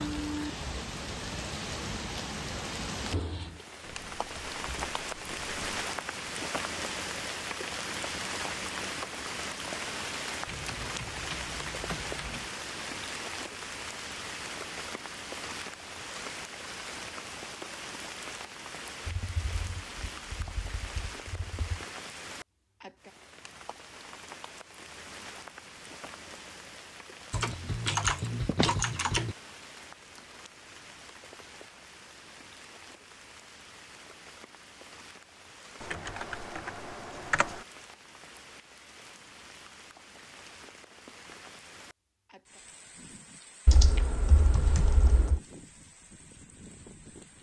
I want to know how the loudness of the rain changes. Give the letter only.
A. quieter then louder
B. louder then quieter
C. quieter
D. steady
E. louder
C.